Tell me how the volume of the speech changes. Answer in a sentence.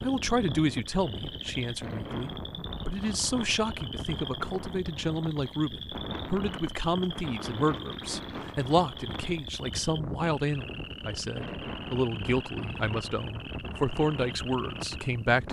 The volume of the speech stays about the same.